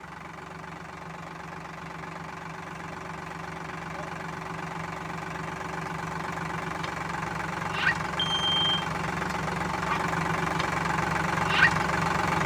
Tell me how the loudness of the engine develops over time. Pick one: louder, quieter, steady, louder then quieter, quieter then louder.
louder.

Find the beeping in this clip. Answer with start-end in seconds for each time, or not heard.
8.2-8.8.